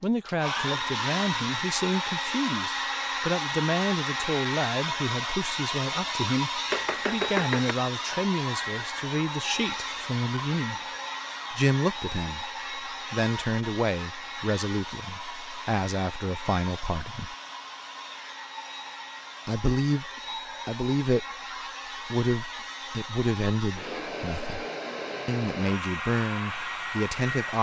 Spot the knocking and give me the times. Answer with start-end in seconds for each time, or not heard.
6.7-7.8.